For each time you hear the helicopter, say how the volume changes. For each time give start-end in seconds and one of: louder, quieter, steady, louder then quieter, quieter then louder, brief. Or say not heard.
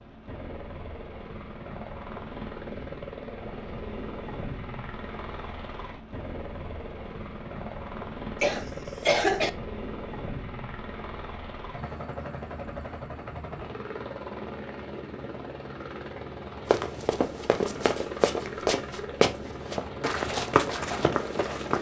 0.0-21.7 steady.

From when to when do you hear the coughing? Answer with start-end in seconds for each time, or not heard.
8.4-9.5.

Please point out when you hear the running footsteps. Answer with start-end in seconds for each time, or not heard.
16.7-21.7.